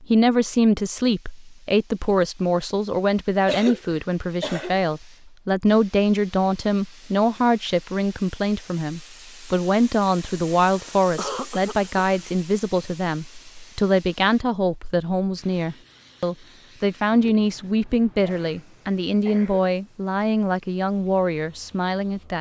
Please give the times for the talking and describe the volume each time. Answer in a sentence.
You can hear the talking from 0.1 to 22.3 s, at a steady volume.